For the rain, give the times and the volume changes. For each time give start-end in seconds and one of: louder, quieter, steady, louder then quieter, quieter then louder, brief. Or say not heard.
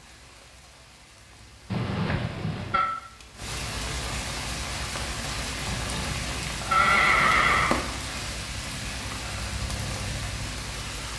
0.0-11.1 louder.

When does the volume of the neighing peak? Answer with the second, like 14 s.
7 s.